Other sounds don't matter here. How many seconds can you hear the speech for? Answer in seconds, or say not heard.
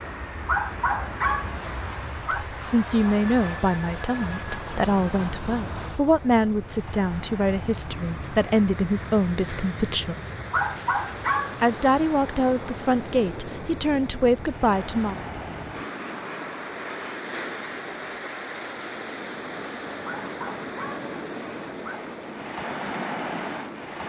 11 s.